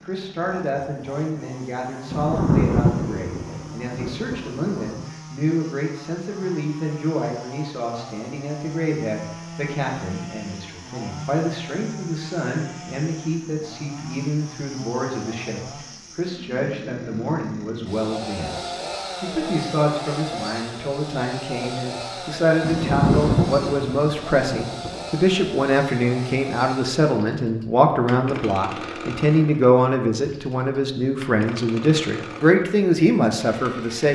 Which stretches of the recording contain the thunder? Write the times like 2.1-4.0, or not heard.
2.1-5.0, 22.6-25.1.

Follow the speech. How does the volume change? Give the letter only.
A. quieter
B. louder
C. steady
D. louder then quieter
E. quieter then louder
B.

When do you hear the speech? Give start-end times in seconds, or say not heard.
0.1-34.1.